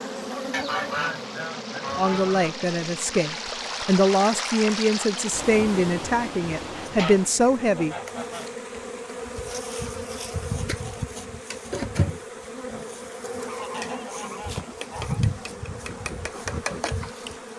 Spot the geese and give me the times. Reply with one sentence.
You can hear the geese from 0.5 to 2.5 s, from 7.0 to 8.5 s and from 13.3 to 15.2 s.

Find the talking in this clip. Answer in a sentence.
The talking can be heard from 1.9 to 8.0 s.